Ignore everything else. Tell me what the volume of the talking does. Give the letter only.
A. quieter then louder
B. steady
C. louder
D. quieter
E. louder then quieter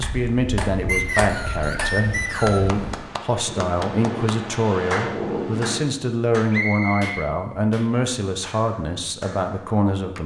B.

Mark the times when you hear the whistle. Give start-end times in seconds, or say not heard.
0.8-2.7, 6.5-7.3.